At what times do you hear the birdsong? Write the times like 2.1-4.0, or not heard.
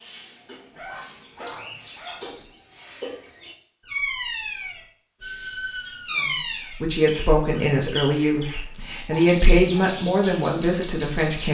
0.0-11.4.